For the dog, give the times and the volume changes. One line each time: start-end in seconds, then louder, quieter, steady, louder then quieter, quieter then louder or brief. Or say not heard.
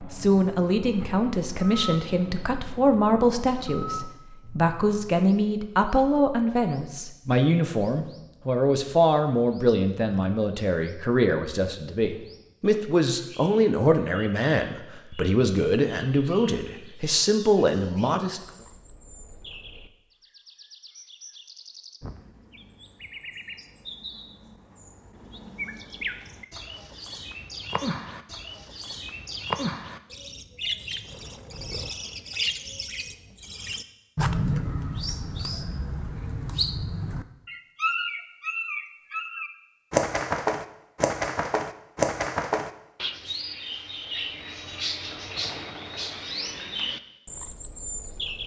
not heard.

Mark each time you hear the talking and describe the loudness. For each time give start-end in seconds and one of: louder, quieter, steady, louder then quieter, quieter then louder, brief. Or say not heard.
0.0-18.4 steady.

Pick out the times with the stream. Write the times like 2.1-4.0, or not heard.
not heard.